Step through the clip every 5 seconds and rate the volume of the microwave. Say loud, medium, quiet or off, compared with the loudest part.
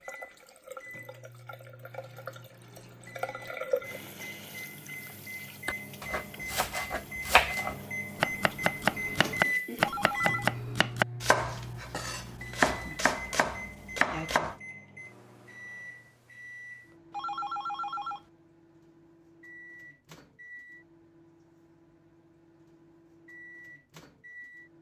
medium, loud, loud, quiet, quiet.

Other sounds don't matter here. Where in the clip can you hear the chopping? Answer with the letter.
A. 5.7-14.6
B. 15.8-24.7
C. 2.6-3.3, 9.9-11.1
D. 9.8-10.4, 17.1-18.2
A.